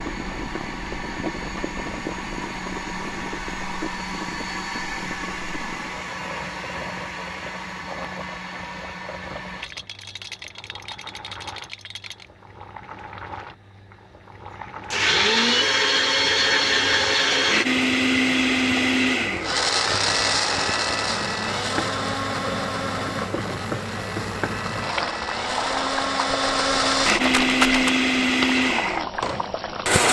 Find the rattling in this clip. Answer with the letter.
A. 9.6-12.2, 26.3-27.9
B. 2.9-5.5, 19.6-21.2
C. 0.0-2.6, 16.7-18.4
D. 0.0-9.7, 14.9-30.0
A.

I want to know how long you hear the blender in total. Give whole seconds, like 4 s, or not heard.
25 s.